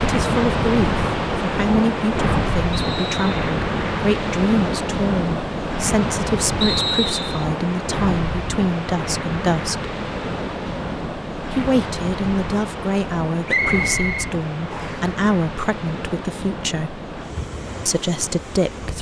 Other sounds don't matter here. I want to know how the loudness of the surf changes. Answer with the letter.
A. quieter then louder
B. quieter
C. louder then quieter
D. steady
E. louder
B.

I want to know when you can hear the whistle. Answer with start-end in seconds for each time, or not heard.
2.7-3.4, 6.6-7.5, 13.4-15.1.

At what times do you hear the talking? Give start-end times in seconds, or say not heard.
0.0-9.9, 11.5-17.0, 17.9-18.9.